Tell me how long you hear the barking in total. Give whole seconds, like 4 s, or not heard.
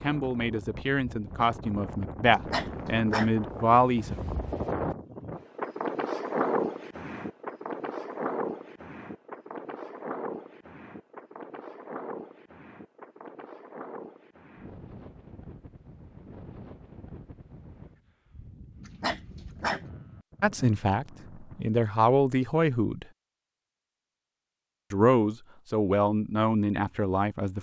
2 s.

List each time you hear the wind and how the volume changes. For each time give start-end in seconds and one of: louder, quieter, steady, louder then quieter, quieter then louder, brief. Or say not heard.
0.0-21.7 louder then quieter.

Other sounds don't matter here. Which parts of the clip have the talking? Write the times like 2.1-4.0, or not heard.
0.0-4.2, 20.4-23.1, 24.9-27.5.